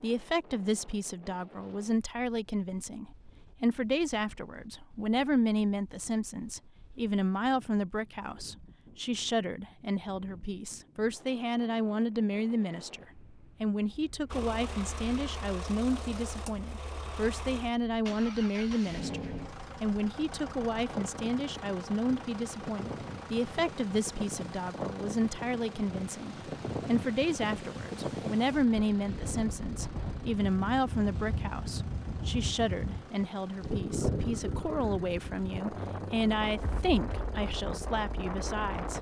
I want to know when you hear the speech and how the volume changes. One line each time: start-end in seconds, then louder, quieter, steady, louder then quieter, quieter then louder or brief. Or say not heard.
0.0-38.9 steady.